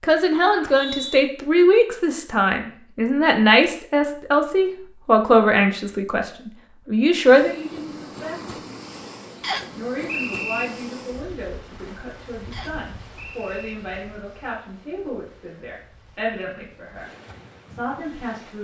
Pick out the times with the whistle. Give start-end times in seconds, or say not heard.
0.5-1.2, 9.4-10.7, 12.5-13.8.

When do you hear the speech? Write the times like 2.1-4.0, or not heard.
0.0-8.6, 9.8-17.1, 17.7-18.5.